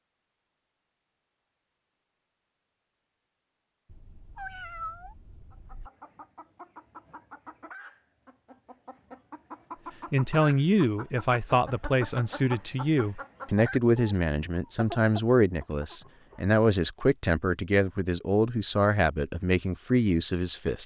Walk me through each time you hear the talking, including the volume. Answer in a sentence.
The talking can be heard from 10.1 to 20.8 s, at a steady volume.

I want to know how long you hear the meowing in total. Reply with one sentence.
You can hear the meowing for 2 seconds altogether.